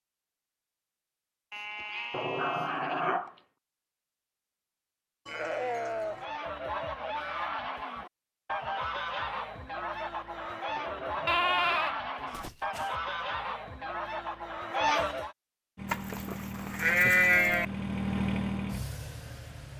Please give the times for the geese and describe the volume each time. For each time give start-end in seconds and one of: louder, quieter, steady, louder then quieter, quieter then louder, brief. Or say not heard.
6.0-15.3 steady.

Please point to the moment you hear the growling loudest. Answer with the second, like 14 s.
3 s.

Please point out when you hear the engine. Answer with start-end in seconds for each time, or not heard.
15.8-19.7.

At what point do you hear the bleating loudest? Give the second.
17 s.